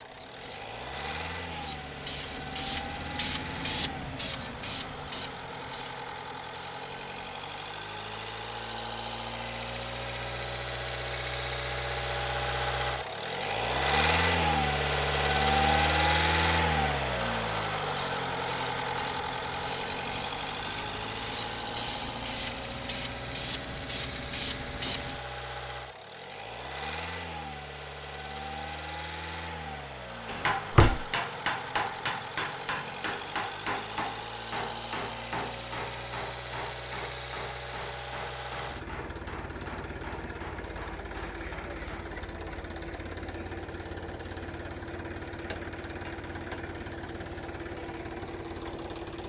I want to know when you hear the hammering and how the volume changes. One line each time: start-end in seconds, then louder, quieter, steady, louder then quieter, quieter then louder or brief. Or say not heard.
30.2-42.1 quieter.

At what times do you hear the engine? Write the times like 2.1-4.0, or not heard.
0.0-49.2.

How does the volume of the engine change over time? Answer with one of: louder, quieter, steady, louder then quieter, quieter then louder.
louder then quieter.